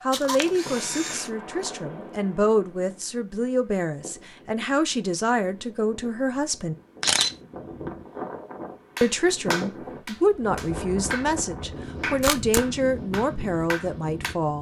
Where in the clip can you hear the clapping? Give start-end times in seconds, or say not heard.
8.9-11.3, 12.0-14.3.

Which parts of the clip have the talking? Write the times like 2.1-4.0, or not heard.
0.0-6.8, 9.0-14.5.